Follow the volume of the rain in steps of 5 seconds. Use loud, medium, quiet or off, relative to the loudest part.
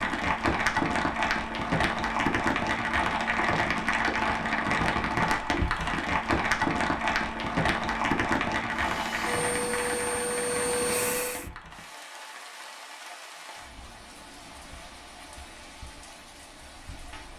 loud, loud, quiet, quiet.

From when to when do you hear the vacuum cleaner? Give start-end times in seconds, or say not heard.
8.7-11.4.